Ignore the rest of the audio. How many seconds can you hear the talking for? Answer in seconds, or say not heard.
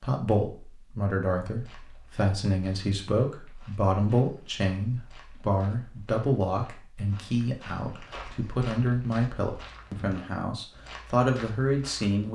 12 s.